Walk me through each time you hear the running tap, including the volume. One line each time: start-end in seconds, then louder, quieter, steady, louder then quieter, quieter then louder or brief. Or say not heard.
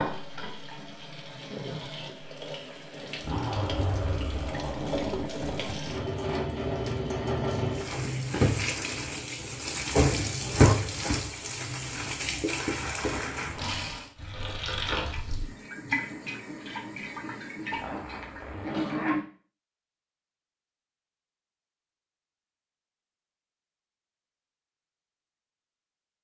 0.0-19.2 louder then quieter.